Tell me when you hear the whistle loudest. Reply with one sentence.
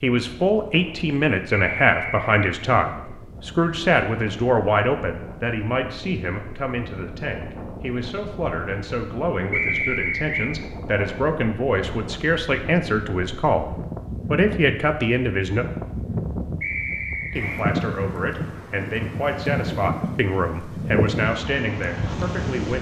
The loudest moment of the whistle is at 10 seconds.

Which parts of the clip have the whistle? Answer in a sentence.
You can hear the whistle from 1.6 to 2.4 s, from 9.5 to 10.5 s and from 16.6 to 17.6 s.